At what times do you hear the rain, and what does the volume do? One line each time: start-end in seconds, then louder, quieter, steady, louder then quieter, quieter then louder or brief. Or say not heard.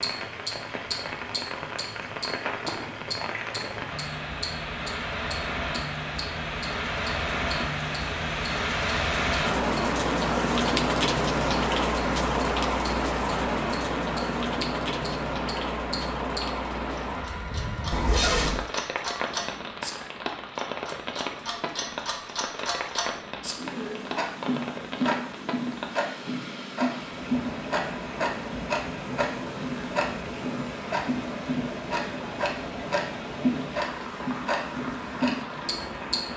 0.0-36.3 louder then quieter.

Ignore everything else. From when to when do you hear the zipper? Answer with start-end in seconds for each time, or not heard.
17.9-18.6.